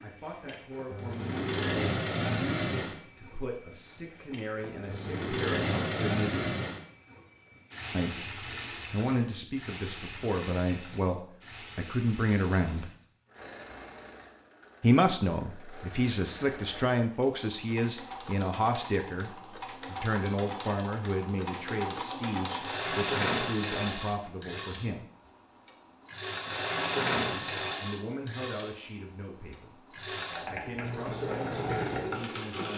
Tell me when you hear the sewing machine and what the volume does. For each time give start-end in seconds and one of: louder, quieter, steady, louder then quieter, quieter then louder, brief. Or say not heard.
0.0-32.7 quieter then louder.